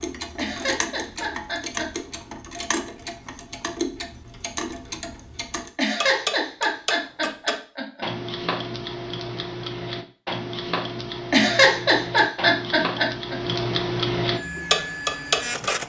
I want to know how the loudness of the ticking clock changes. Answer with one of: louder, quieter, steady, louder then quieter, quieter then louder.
louder.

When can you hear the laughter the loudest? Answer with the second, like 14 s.
12 s.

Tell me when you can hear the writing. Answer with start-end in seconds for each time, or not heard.
not heard.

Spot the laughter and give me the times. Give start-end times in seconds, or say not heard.
0.3-1.9, 5.8-8.1, 11.3-13.3.